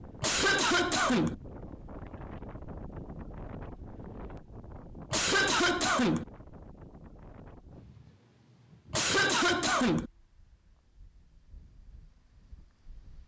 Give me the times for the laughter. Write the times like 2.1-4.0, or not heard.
0.2-1.4, 5.1-6.2, 8.9-10.1.